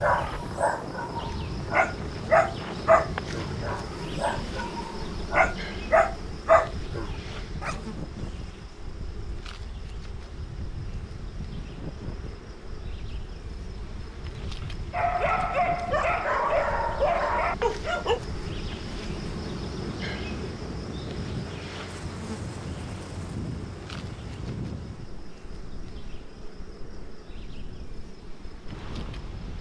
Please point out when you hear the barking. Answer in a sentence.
The barking can be heard from 0.0 to 7.8 s and from 14.9 to 18.2 s.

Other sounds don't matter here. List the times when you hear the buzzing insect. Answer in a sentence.
The buzzing insect can be heard from 0.0 to 29.5 s.